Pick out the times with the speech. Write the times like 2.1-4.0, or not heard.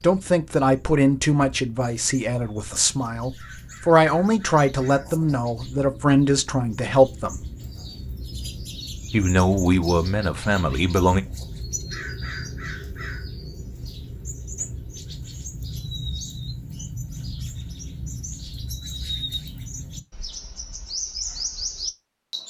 0.0-7.4, 9.1-11.2.